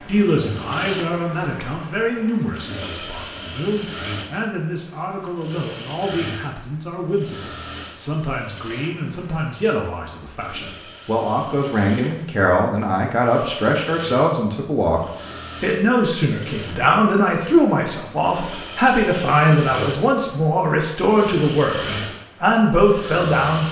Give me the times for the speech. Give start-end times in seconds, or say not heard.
0.1-15.0, 15.6-23.6.